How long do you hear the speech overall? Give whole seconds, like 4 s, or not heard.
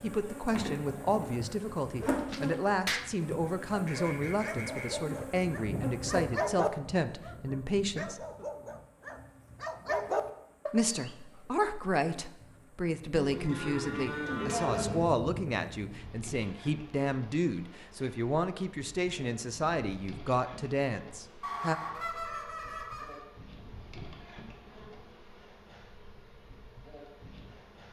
19 s.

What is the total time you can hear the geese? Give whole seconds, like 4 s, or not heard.
3 s.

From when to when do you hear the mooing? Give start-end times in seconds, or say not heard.
13.1-15.1.